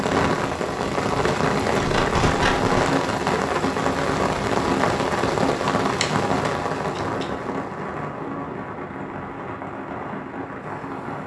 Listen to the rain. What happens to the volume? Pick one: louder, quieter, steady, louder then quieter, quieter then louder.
quieter.